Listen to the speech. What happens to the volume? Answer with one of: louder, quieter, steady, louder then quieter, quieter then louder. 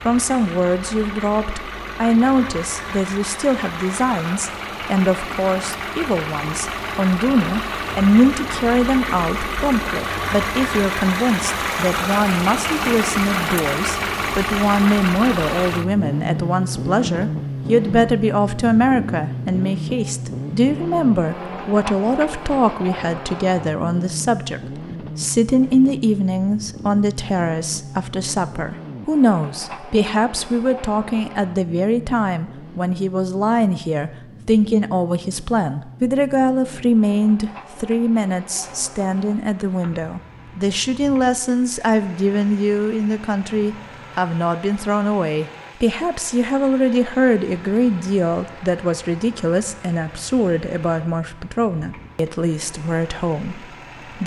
steady.